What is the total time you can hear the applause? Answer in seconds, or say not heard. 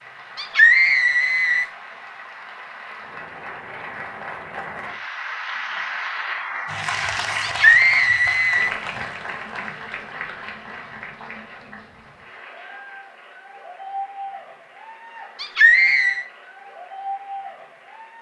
18 s.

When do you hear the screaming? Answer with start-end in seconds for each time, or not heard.
0.3-1.6, 7.4-8.7, 15.4-16.2.